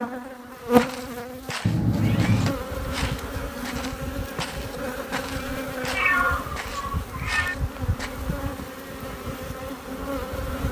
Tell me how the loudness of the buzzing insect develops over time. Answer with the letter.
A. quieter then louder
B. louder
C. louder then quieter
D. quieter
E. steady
D.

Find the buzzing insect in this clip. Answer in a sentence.
You can hear the buzzing insect from 0.0 to 10.6 s.